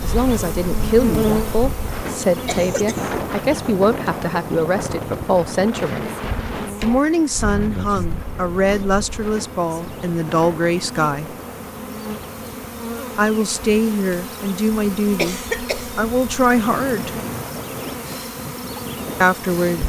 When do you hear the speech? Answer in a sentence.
You can hear the speech from 0.0 to 6.0 s, from 6.8 to 11.3 s, from 13.2 to 17.1 s and from 19.2 to 19.8 s.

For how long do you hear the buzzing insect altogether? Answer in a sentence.
The buzzing insect can be heard for 20 seconds in total.